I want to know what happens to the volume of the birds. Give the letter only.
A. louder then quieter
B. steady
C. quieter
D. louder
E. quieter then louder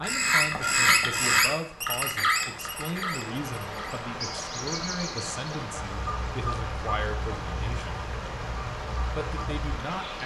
C.